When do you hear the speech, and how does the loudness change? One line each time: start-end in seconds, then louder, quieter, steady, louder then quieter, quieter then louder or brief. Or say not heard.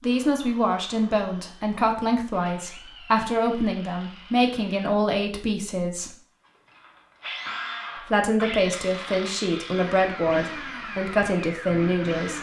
0.0-6.1 steady
8.1-12.3 steady.